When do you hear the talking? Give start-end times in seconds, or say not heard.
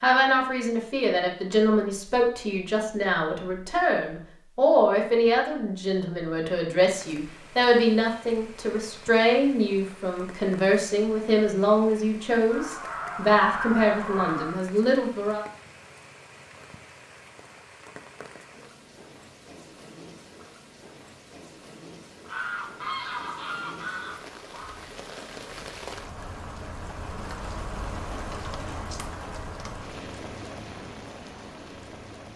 0.0-15.4.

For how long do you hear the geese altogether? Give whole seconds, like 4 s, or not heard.
5 s.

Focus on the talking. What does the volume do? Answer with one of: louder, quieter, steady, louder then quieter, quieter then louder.
steady.